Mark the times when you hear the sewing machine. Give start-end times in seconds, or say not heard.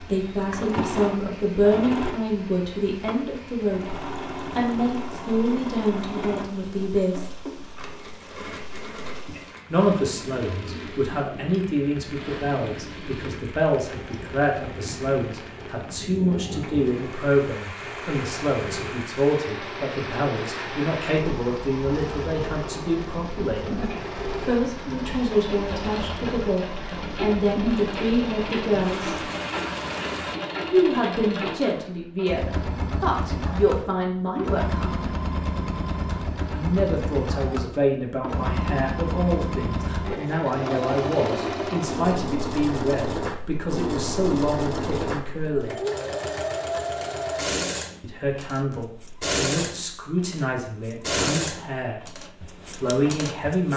0.0-53.7.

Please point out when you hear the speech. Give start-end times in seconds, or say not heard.
0.0-7.3, 9.7-23.6, 24.4-29.2, 30.6-34.9, 36.5-45.8, 48.0-53.7.